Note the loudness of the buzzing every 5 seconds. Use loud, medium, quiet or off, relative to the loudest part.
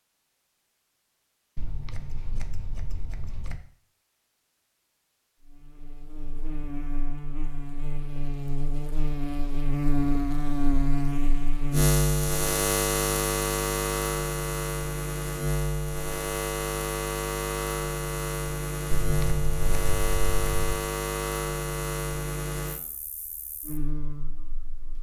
off, medium, loud, loud, medium.